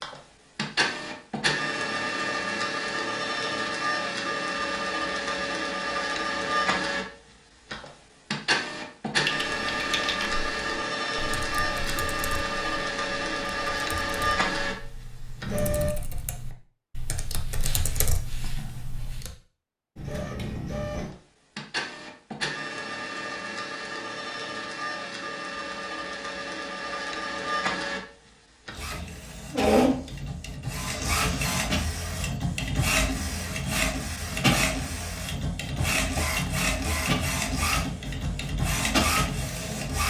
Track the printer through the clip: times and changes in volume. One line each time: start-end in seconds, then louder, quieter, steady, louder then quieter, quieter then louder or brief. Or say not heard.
0.0-15.9 steady
19.9-40.0 louder.